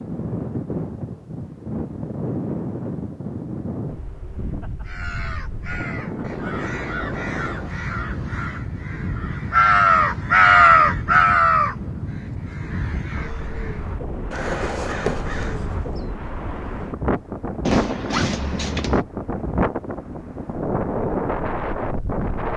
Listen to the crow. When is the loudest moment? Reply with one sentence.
The loudest moment of the crow is at 11 seconds.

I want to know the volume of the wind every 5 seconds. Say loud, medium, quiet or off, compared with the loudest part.
loud, medium, medium, loud, loud.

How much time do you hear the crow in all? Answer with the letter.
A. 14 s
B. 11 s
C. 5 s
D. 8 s
B.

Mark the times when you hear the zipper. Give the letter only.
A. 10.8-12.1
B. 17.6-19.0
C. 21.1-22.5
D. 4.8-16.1
B.